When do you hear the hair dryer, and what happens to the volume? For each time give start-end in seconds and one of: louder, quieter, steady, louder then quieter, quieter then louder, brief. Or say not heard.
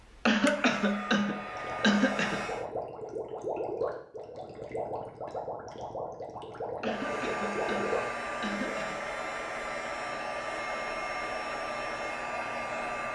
0.0-2.6 brief
6.8-13.1 steady.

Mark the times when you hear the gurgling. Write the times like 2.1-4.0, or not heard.
1.4-8.8.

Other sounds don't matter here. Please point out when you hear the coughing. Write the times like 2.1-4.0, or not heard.
0.2-2.5, 6.8-9.0.